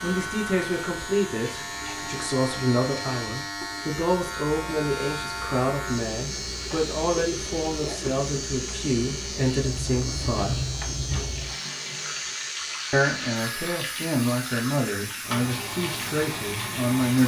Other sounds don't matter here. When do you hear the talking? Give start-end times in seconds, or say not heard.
0.0-10.6, 12.9-17.2.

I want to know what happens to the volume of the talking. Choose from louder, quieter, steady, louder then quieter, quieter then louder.
steady.